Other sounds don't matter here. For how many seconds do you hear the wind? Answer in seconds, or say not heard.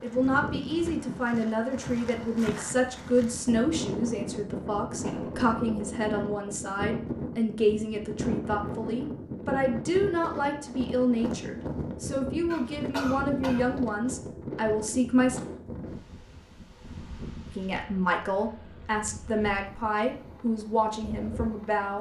22 s.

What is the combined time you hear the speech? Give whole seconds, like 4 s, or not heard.
20 s.